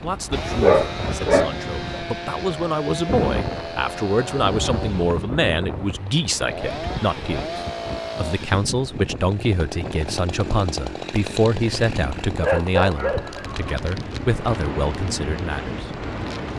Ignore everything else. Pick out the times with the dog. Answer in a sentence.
The dog can be heard from 0.3 to 2.0 s and from 12.4 to 13.8 s.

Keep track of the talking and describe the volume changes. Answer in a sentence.
The loudness of the talking stays about the same.